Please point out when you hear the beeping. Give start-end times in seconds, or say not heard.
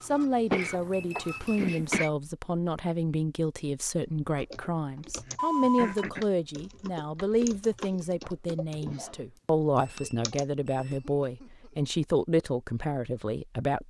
0.7-1.9, 5.3-6.0, 9.3-11.1.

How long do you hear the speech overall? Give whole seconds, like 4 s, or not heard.
14 s.